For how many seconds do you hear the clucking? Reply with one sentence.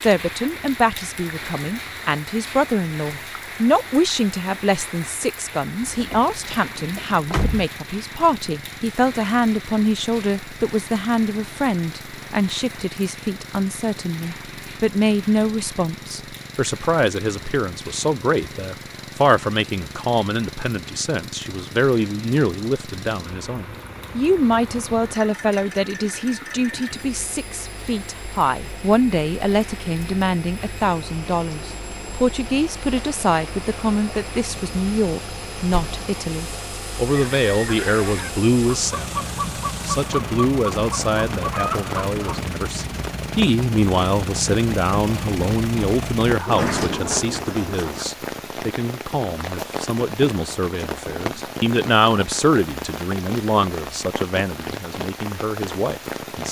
You can hear the clucking for 5 seconds altogether.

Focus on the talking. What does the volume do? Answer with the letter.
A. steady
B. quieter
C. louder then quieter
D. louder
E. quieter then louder
A.